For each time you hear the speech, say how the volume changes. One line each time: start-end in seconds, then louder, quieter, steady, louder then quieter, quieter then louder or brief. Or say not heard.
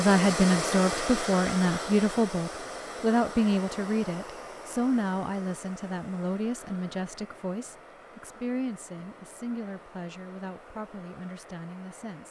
0.0-12.2 quieter.